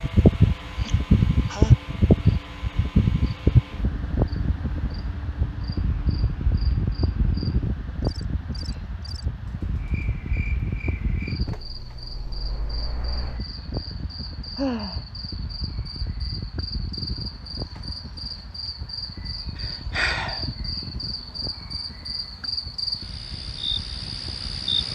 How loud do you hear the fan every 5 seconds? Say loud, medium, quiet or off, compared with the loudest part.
loud, medium, quiet, quiet, quiet.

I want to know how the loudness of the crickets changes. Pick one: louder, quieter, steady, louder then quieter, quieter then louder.
louder.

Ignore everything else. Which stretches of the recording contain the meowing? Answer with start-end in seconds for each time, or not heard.
not heard.